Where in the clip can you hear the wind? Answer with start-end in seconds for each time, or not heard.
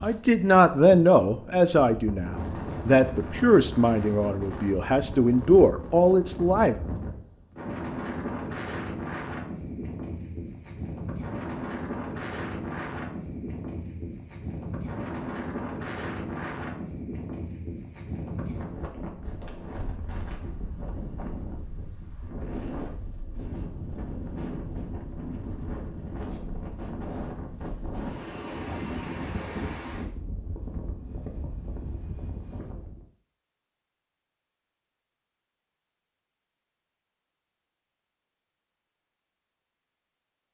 0.0-33.0.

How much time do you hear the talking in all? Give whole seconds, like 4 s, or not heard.
7 s.